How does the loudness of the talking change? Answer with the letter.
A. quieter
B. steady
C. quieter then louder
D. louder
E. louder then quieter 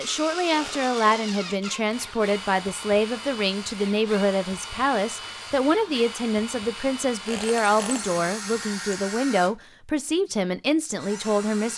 B.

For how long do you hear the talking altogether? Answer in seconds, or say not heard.
12 s.